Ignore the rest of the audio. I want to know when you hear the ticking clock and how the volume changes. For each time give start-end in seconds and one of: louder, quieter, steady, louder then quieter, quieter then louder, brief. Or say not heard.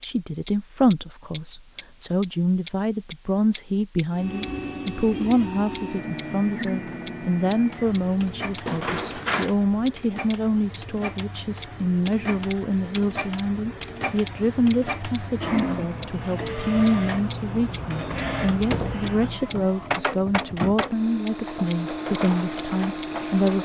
0.0-23.5 steady.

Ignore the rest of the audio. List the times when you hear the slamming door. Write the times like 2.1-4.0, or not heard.
8.7-9.6, 18.4-19.1.